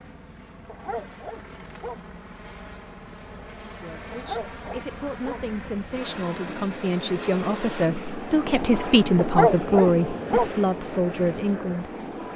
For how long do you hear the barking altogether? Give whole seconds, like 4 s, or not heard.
4 s.